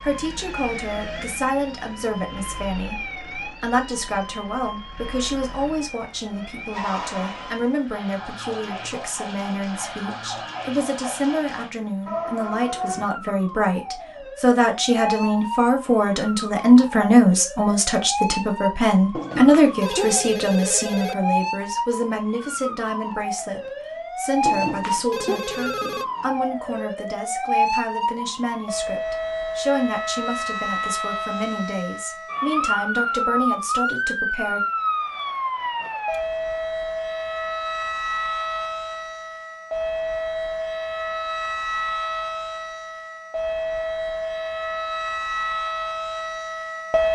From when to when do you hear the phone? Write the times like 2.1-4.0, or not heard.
19.1-21.1, 24.4-26.1.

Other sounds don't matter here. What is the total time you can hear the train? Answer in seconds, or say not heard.
not heard.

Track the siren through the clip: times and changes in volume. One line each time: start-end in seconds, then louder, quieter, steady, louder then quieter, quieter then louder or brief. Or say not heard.
0.0-47.0 louder.